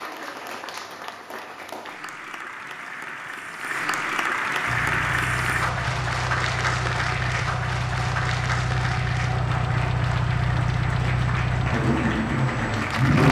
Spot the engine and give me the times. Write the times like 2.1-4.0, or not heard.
4.7-13.2.